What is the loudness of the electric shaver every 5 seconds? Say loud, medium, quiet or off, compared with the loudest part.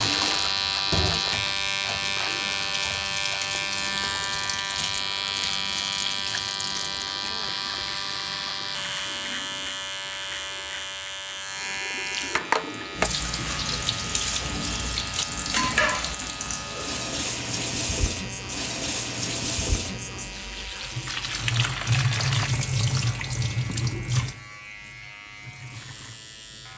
loud, loud, medium, medium, quiet, quiet.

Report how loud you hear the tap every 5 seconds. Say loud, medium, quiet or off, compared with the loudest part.
medium, medium, loud, loud, loud, quiet.